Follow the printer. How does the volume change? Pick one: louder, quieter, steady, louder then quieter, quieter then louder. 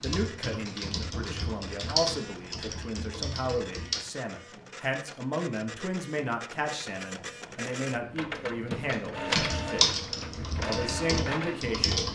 louder.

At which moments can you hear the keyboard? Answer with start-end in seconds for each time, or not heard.
0.0-4.0, 8.8-12.1.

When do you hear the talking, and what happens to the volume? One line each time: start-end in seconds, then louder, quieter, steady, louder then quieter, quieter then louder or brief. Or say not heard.
0.0-10.0 steady
10.7-12.1 brief.